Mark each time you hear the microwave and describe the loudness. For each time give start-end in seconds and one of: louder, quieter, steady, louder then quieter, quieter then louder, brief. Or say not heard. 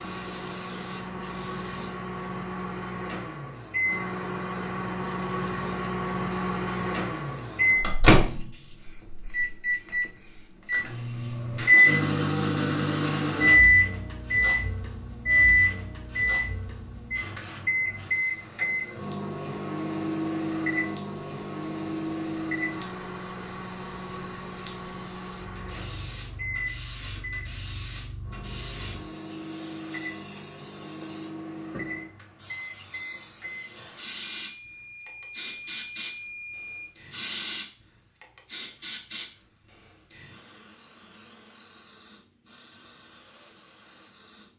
0.0-36.9 louder then quieter.